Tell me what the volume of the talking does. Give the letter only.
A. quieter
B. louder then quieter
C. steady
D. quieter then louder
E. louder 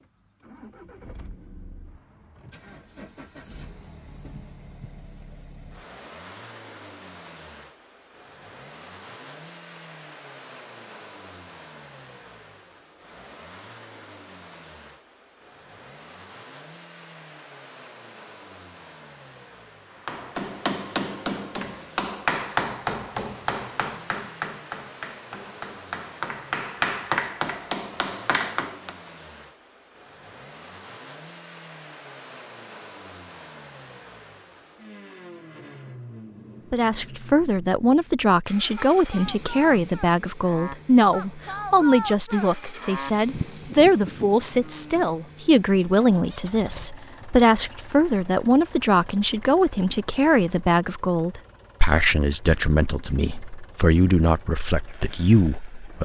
C.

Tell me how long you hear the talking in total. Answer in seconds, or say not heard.
19 s.